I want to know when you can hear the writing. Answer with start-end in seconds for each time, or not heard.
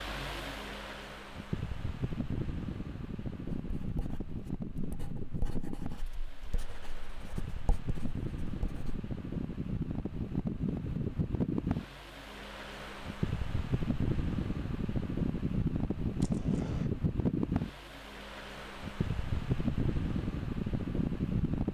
3.6-9.0.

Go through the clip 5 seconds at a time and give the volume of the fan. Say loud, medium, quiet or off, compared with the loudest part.
medium, medium, loud, loud, loud.